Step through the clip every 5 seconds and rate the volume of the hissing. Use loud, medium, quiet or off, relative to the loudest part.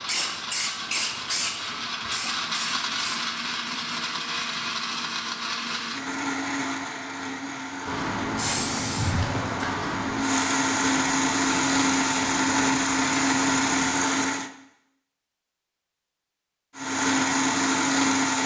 loud, loud, medium, off.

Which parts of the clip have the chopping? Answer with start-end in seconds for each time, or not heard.
not heard.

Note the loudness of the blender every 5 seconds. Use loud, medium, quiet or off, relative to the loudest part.
medium, medium, loud, loud.